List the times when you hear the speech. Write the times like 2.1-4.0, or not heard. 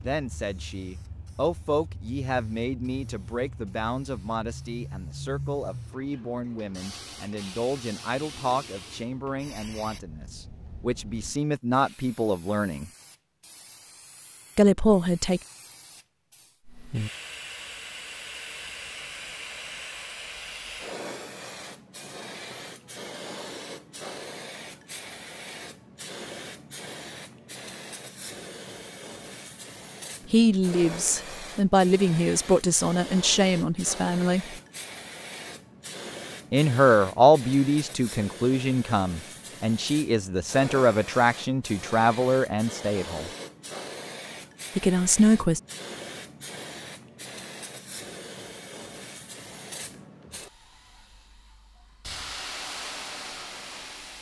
0.0-12.8, 14.6-15.4, 30.3-34.5, 36.5-43.3, 44.8-45.6.